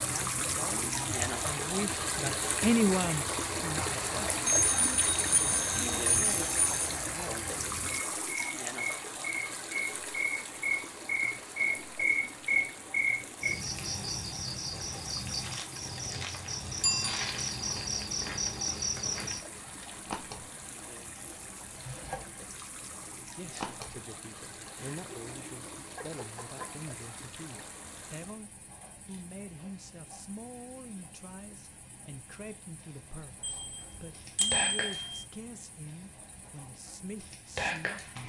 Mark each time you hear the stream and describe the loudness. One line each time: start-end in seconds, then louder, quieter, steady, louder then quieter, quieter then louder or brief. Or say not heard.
0.0-28.4 quieter.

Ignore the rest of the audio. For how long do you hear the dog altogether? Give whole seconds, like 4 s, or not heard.
2 s.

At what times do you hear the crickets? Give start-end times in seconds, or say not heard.
0.0-38.2.